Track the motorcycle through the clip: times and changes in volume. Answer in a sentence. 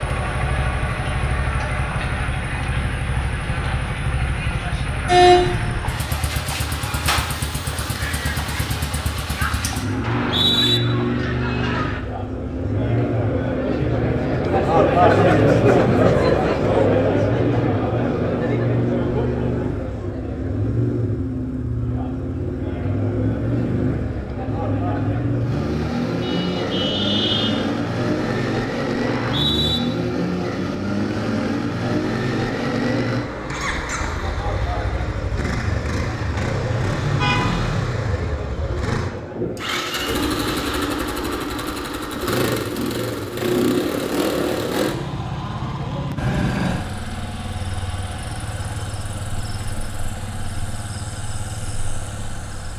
The motorcycle can be heard from 0.0 to 52.7 s, at a steady volume.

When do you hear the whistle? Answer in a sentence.
The whistle can be heard from 10.1 to 10.8 s and from 29.1 to 29.8 s.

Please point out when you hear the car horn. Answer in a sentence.
The car horn can be heard from 5.0 to 5.5 s, from 26.2 to 27.6 s and from 36.1 to 37.8 s.